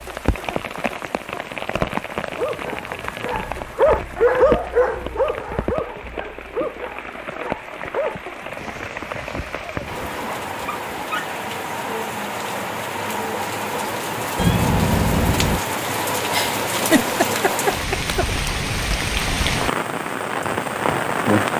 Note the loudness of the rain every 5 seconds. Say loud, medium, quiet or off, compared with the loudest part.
medium, medium, medium, loud, loud.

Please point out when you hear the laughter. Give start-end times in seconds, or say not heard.
16.3-18.2.